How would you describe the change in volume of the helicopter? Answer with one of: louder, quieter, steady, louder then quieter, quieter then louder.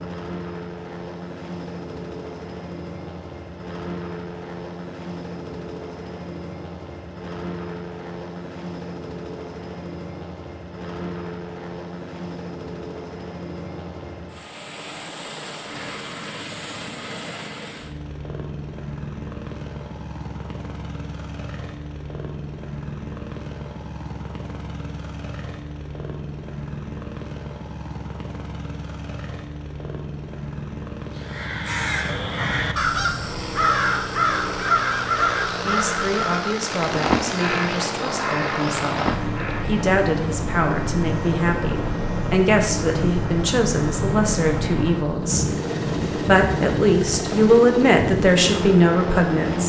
louder.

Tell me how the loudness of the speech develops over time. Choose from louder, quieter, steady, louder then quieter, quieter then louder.
louder.